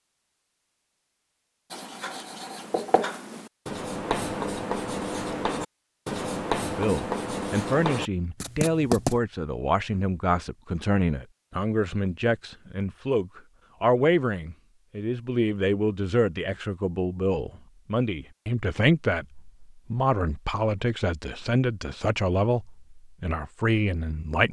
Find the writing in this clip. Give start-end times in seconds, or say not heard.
1.7-9.2.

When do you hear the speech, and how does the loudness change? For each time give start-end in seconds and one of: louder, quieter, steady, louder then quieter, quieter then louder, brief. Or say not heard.
6.7-24.4 steady.